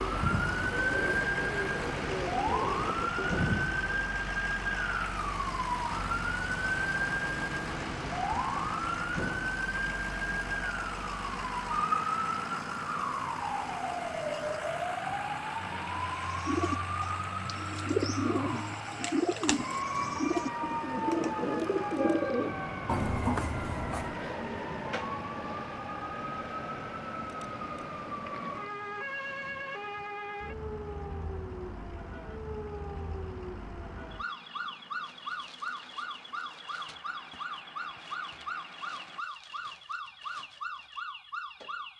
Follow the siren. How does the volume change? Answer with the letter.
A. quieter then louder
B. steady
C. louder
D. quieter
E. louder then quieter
D.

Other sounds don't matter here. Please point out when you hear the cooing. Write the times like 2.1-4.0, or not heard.
0.0-4.1, 16.2-24.3.